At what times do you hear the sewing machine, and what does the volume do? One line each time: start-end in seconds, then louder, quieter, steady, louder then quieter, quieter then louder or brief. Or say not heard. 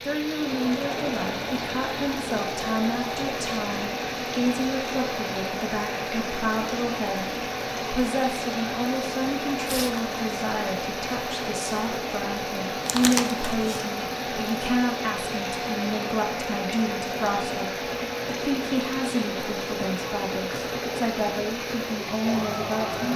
0.0-23.1 steady.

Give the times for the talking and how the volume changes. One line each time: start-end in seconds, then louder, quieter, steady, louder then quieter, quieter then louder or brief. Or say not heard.
0.0-23.1 steady.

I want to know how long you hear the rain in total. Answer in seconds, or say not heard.
23 s.